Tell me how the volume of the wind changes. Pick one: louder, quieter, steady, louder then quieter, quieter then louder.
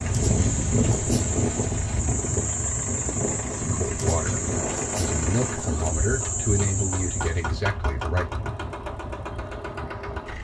quieter.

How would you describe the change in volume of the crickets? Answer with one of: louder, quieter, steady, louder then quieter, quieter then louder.
steady.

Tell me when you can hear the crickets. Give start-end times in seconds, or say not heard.
0.0-7.5.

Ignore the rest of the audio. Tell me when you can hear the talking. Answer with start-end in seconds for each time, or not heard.
3.6-8.3.